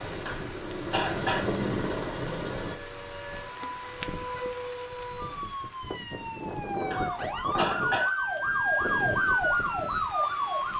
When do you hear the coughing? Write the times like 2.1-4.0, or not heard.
0.2-1.6, 6.9-8.1.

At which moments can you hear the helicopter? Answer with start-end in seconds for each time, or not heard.
0.0-2.8.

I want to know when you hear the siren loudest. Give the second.
9 s.